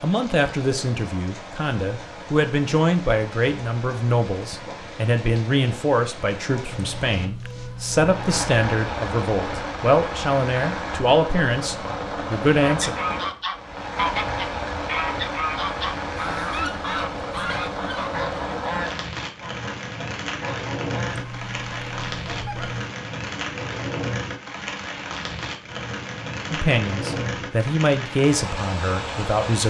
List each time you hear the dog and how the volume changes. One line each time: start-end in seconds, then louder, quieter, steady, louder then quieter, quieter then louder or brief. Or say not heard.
not heard.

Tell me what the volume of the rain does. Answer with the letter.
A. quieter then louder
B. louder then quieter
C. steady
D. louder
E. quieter
D.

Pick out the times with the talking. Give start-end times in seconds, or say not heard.
0.0-12.9, 26.5-29.6.